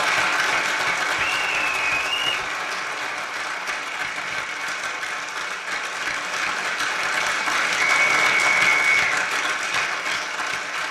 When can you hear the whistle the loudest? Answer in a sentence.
The loudest moment of the whistle is at 9 seconds.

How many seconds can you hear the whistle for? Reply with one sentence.
You can hear the whistle for 3 seconds altogether.